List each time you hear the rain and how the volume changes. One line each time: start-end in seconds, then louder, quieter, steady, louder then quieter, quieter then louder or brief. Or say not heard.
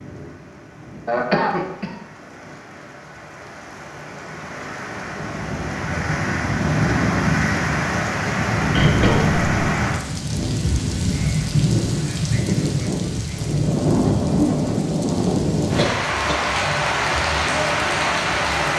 0.0-18.7 louder.